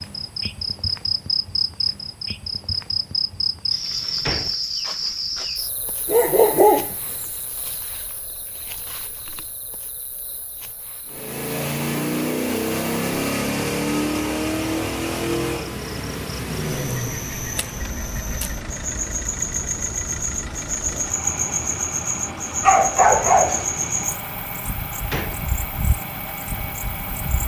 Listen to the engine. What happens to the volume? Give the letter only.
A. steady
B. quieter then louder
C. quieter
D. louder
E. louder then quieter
C.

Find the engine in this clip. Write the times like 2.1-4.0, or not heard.
11.1-27.4.